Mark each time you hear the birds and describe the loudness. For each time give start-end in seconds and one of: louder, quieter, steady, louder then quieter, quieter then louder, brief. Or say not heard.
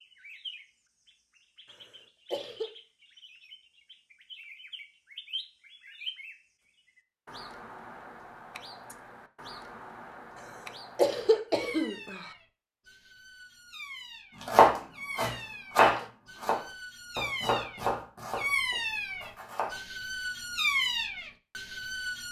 0.0-22.2 louder.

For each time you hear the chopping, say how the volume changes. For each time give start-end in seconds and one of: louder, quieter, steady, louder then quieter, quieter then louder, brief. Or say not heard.
14.4-19.8 louder then quieter.